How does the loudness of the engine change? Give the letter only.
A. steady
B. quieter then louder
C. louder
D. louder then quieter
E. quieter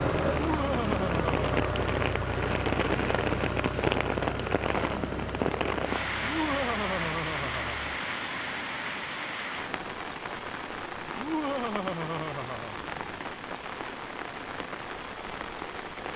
E.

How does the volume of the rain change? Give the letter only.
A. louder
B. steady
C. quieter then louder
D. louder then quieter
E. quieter
E.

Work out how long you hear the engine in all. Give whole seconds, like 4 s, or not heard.
16 s.